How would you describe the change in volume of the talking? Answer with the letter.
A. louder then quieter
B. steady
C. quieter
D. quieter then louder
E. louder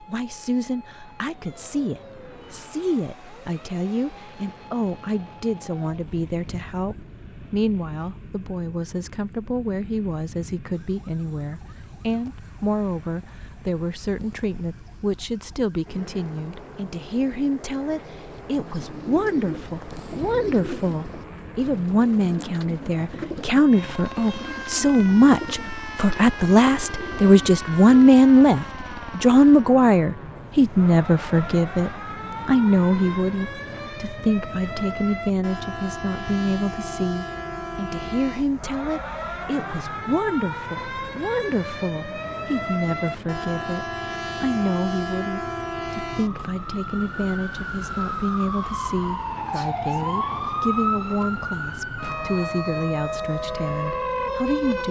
A.